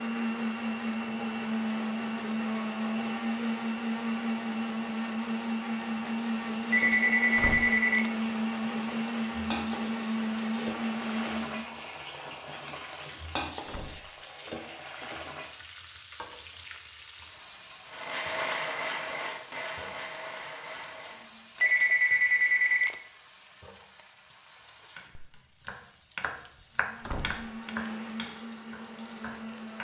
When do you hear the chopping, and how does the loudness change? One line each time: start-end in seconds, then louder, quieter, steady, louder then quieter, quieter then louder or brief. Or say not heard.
24.9-29.8 louder then quieter.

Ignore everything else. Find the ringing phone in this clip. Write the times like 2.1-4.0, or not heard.
6.7-8.1, 21.6-22.9.